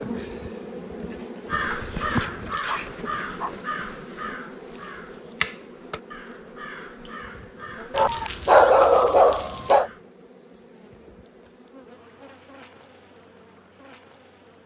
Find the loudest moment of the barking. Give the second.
9 s.